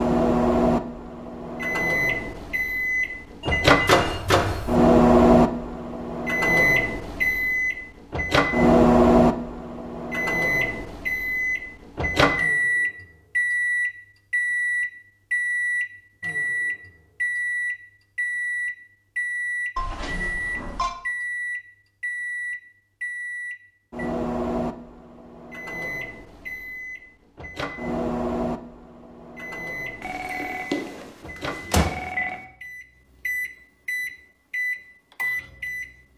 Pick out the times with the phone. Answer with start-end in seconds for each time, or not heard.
3.4-4.8, 19.8-20.9, 30.0-32.4.